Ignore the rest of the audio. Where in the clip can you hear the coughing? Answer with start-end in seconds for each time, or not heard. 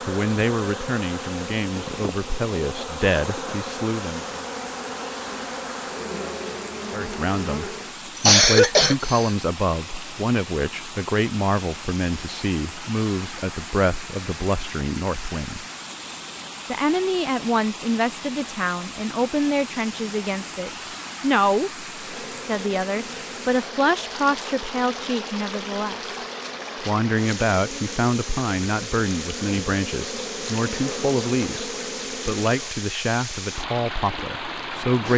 8.2-9.3.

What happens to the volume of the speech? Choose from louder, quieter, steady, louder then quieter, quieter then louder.
steady.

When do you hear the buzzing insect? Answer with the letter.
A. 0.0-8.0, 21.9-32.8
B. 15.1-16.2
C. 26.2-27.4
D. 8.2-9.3
A.